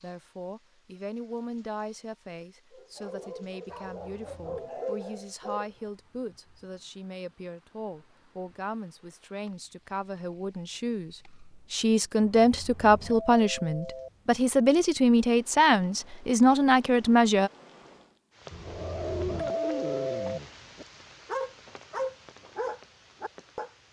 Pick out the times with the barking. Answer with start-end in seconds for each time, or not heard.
2.7-5.7, 18.6-23.7.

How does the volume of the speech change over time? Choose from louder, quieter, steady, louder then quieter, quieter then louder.
louder.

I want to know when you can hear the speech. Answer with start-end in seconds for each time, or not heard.
0.0-17.5.